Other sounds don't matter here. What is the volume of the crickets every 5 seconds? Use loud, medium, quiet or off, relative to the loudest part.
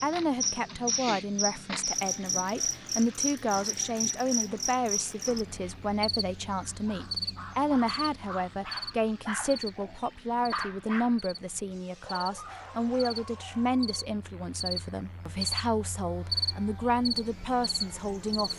loud, medium, medium, loud.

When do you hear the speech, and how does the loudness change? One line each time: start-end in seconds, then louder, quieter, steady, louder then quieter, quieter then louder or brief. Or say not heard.
0.0-18.5 steady.